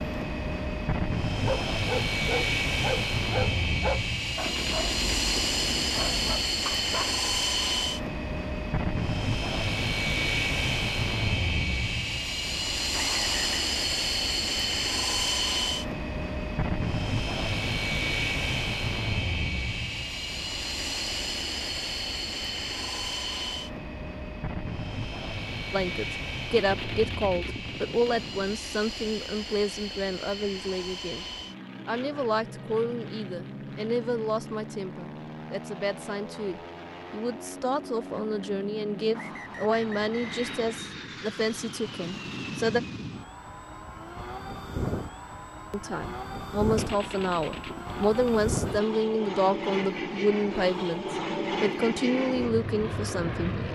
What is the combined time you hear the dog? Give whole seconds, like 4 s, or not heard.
6 s.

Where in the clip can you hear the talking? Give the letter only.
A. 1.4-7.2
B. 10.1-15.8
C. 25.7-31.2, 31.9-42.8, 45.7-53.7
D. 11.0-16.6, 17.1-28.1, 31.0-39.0
C.